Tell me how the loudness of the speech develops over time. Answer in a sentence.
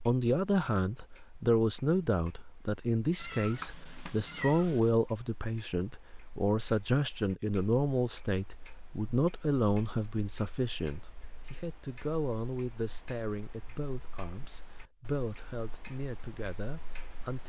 The loudness of the speech goes down.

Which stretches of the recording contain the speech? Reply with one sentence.
The speech can be heard from 0.1 to 17.4 s.